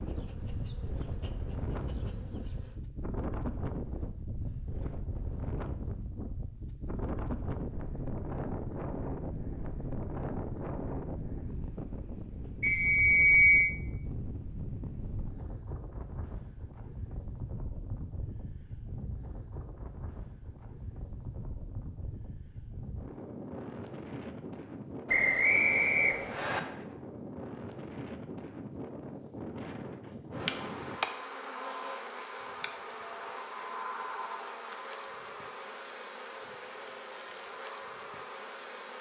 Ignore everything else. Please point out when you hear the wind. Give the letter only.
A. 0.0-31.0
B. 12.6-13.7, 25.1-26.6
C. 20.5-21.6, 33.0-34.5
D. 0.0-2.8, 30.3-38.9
A.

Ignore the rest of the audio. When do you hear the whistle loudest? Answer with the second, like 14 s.
13 s.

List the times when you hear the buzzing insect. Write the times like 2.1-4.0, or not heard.
0.0-2.8, 30.3-38.9.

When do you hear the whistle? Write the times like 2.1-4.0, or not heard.
12.6-13.7, 25.1-26.6.